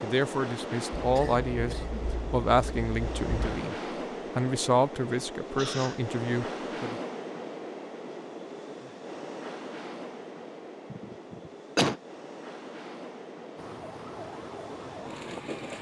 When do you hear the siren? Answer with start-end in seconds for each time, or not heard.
13.6-15.7.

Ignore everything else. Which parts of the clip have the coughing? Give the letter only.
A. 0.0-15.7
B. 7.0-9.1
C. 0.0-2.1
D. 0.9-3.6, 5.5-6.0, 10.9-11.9
D.